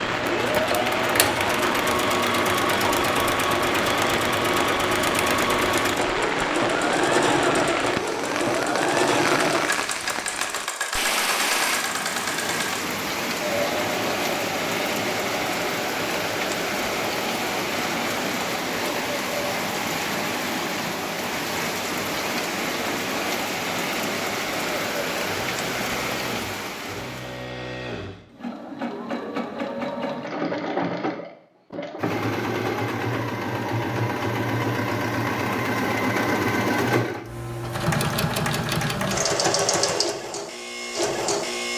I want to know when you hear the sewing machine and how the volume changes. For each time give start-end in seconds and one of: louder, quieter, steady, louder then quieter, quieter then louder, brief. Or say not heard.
0.0-41.7 quieter then louder.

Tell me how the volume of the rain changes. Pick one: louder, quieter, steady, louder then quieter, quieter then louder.
steady.